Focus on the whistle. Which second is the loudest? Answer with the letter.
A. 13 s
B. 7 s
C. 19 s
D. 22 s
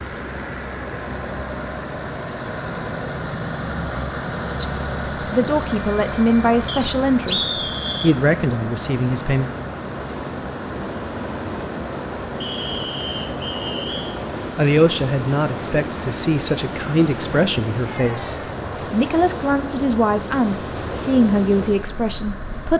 B.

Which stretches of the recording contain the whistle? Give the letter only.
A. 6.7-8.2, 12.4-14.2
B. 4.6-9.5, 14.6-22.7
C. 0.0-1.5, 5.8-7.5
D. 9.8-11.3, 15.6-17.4
A.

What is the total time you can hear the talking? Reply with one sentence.
You can hear the talking for 13 seconds altogether.